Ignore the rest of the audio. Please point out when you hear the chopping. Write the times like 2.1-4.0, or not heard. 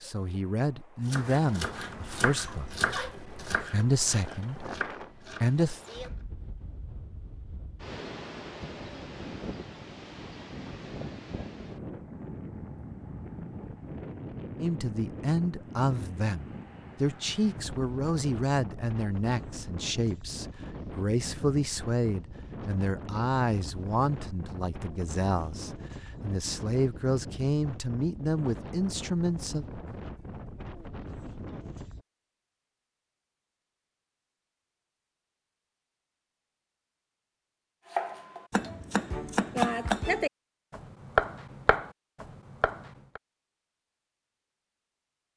1.1-6.2, 37.9-43.2.